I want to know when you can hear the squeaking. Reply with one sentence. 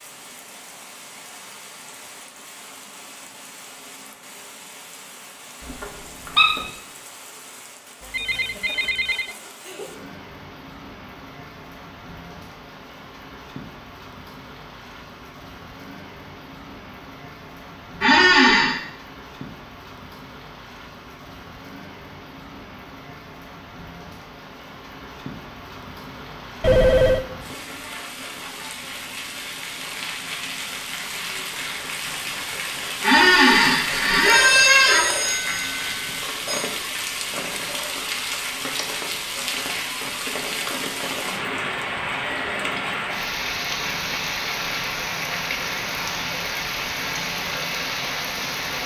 You can hear the squeaking from 5.6 to 6.6 s, from 18.0 to 18.8 s and from 33.0 to 35.0 s.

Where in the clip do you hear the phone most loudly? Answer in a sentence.
The volume of the phone peaks at 27 seconds.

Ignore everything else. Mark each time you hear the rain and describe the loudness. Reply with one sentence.
You can hear the rain from 0.0 to 48.8 s, getting louder.